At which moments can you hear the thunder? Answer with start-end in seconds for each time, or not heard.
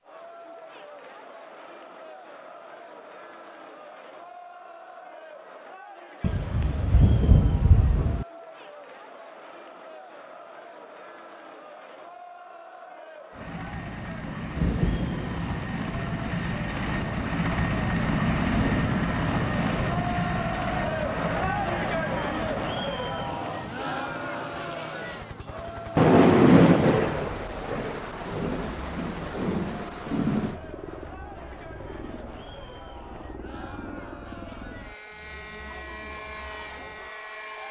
6.2-8.2, 14.6-15.7, 25.9-30.6.